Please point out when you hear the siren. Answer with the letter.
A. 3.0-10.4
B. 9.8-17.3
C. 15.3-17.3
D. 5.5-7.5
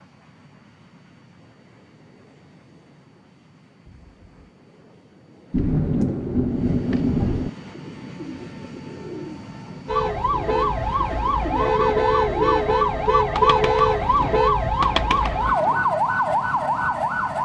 B.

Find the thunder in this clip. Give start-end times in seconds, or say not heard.
5.5-7.5.